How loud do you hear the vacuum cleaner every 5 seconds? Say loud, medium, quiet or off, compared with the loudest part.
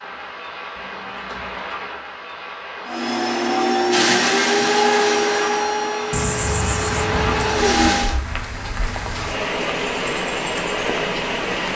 loud, loud, off.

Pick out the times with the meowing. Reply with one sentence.
The meowing can be heard from 0.8 to 1.8 s and from 6.1 to 7.6 s.